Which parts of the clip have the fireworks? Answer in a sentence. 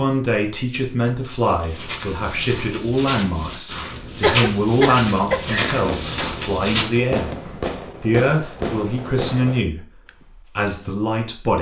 The fireworks can be heard from 5.5 to 10.2 s.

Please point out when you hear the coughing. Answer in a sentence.
You can hear the coughing from 4.2 to 5.8 s.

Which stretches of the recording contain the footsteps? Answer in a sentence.
The footsteps can be heard from 1.4 to 6.8 s.